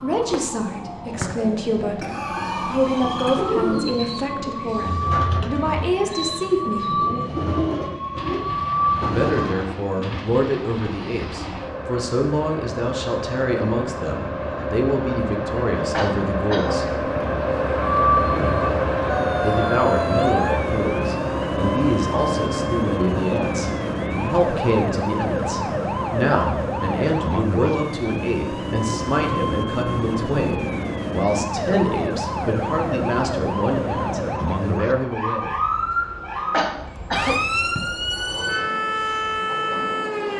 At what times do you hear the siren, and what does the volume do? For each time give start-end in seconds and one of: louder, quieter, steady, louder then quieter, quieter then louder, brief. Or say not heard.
0.0-9.6 louder
17.8-40.3 steady.